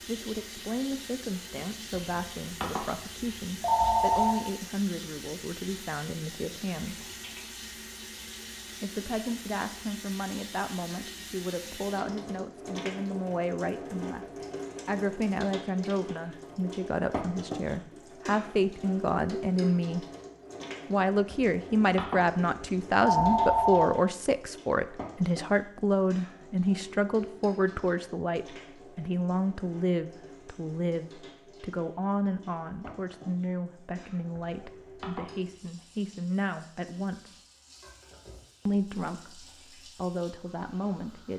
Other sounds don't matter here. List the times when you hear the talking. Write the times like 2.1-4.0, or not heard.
0.1-7.0, 8.8-14.2, 14.8-20.1, 20.9-37.4, 38.6-41.3.